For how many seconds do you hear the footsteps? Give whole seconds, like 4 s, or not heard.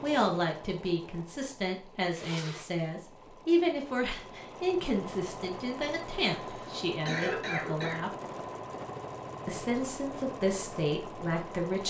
not heard.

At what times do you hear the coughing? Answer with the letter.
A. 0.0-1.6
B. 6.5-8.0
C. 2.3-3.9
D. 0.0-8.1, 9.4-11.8
B.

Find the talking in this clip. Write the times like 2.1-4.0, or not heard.
0.0-8.1, 9.4-11.8.